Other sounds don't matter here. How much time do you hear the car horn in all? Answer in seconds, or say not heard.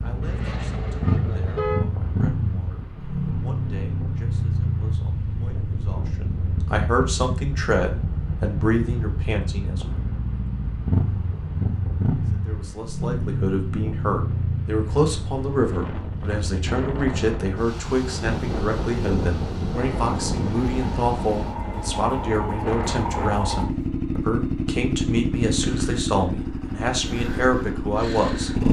2 s.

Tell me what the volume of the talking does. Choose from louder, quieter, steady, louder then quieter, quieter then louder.
louder.